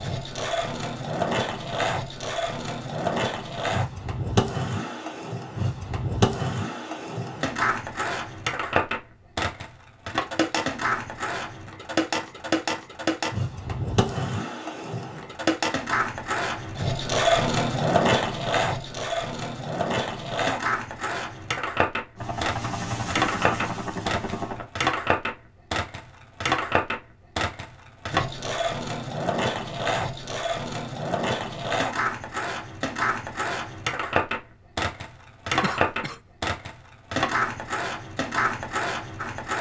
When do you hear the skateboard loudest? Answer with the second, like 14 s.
18 s.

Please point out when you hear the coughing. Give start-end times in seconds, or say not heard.
35.6-36.2.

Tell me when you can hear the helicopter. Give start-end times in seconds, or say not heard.
22.1-24.7.